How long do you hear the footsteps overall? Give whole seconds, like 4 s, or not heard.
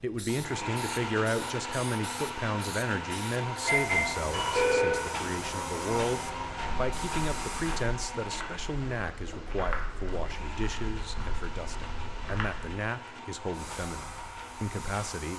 6 s.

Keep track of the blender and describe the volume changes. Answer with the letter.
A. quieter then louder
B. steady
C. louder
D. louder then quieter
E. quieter
E.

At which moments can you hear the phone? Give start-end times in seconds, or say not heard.
3.6-5.0.